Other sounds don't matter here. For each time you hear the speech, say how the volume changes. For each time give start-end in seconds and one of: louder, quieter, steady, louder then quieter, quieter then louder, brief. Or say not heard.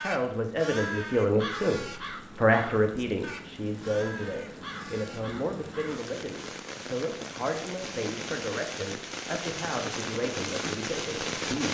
0.0-11.6 quieter.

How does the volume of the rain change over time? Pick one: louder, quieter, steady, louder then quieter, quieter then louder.
louder.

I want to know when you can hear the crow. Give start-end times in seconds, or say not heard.
0.0-6.0.